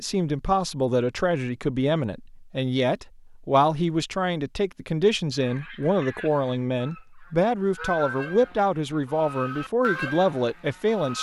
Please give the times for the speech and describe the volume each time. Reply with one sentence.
You can hear the speech from 0.0 to 11.1 s, at a steady volume.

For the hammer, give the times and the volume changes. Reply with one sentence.
The hammer can't be heard in this clip.